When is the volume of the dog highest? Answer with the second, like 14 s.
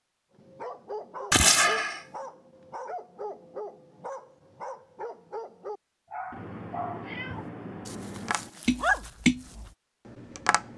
9 s.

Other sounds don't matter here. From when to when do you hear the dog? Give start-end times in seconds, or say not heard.
0.3-9.7.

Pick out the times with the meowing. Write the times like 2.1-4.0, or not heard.
1.3-2.0, 6.3-8.3.